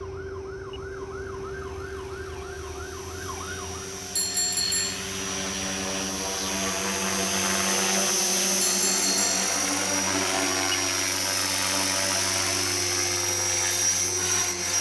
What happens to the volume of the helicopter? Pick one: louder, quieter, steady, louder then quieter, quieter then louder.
louder.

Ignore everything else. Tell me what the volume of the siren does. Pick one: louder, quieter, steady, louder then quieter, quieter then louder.
quieter.